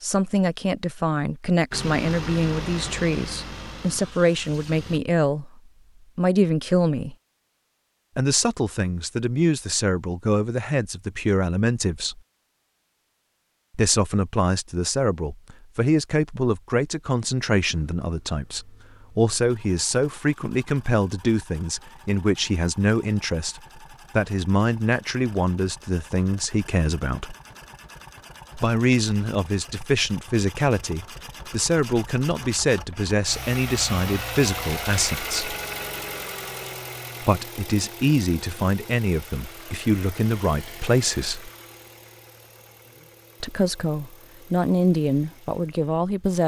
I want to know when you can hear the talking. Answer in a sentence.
The talking can be heard from 0.0 to 7.2 s, from 8.2 to 12.2 s, from 13.8 to 27.4 s, from 28.6 to 35.5 s, from 37.2 to 41.5 s and from 43.4 to 46.4 s.